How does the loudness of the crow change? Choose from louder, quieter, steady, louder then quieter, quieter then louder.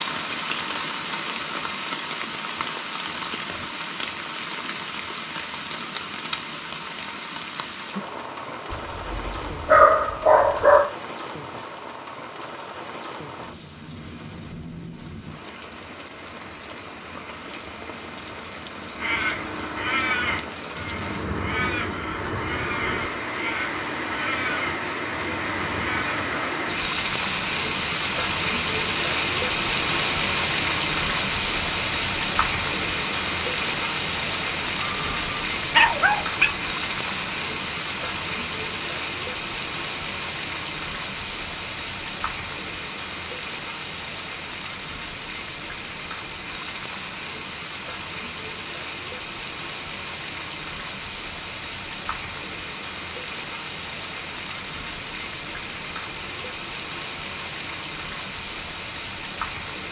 quieter.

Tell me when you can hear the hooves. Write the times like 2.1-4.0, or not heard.
not heard.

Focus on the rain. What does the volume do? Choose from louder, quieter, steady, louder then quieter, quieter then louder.
louder then quieter.